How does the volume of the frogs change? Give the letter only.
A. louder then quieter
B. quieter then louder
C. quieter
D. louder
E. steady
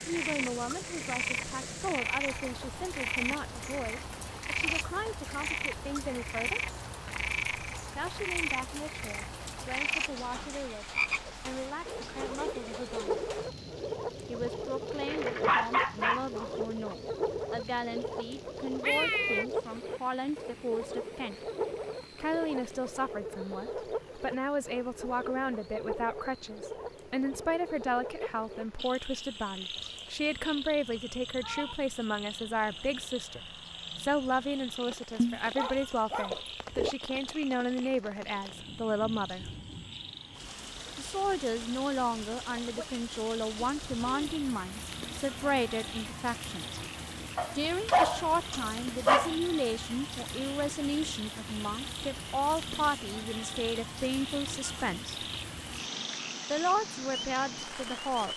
C.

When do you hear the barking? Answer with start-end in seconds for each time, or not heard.
14.9-16.9, 35.1-37.0, 47.4-49.4.